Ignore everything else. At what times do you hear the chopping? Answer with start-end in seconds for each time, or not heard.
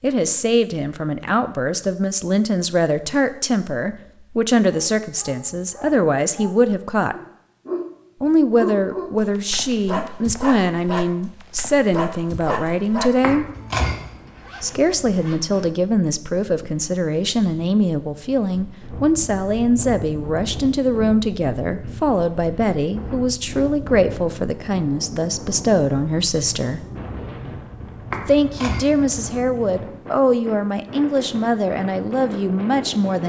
13.2-13.9, 28.1-28.9.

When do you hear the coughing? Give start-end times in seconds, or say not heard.
not heard.